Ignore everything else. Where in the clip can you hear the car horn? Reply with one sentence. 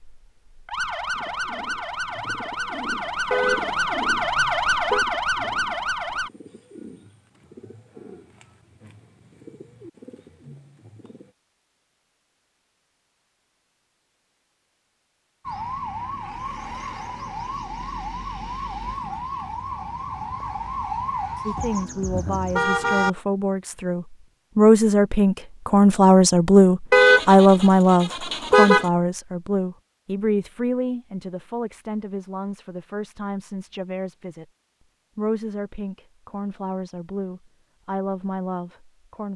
The car horn can be heard from 3.3 to 5.0 s, from 21.6 to 23.1 s and from 26.9 to 28.9 s.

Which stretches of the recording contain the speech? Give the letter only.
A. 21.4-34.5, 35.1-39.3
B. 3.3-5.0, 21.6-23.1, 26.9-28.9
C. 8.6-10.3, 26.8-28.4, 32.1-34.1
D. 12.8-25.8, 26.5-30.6
A.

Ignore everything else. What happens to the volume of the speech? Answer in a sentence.
The loudness of the speech goes up, then down.